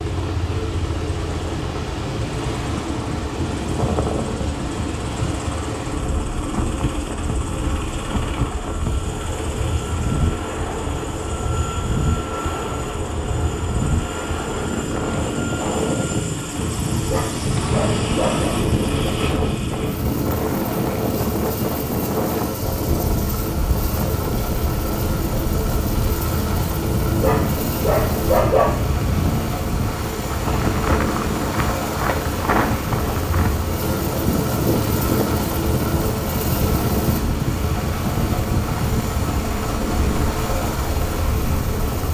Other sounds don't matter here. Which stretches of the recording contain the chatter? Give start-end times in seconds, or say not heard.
not heard.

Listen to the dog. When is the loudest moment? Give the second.
28 s.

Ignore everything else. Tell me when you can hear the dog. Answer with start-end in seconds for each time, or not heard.
17.1-18.6, 27.1-28.8.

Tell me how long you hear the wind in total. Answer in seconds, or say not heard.
42 s.